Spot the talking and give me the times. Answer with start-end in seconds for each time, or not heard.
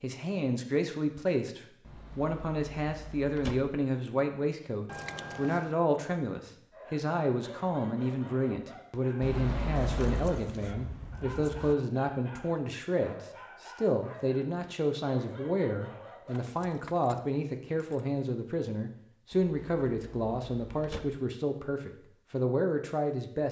0.0-23.4.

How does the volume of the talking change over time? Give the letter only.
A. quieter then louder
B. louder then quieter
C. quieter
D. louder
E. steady
E.